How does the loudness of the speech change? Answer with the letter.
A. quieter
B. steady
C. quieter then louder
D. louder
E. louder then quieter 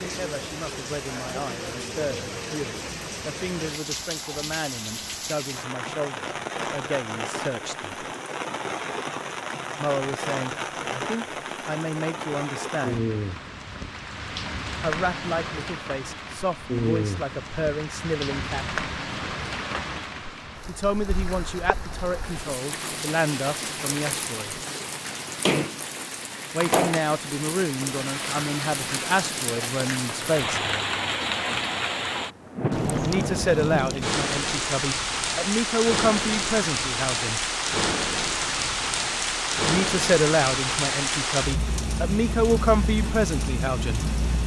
D.